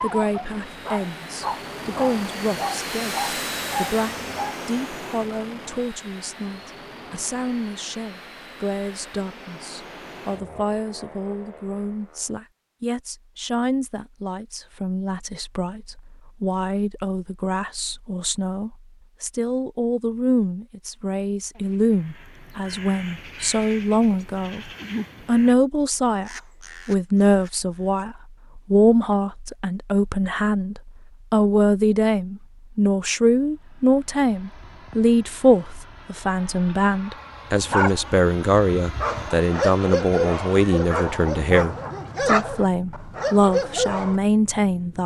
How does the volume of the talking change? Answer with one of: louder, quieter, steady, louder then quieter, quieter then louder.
louder.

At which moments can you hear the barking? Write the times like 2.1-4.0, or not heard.
0.0-4.5, 37.5-44.2.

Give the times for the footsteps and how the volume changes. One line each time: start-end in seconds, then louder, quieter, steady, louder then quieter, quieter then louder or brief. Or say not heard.
not heard.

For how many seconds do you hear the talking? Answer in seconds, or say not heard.
45 s.